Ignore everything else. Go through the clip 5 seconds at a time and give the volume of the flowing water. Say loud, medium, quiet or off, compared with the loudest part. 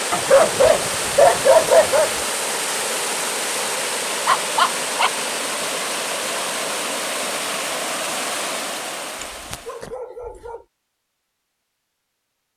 loud, loud, off.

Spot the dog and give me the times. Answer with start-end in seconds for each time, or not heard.
0.1-2.2, 4.2-5.2, 9.2-10.6.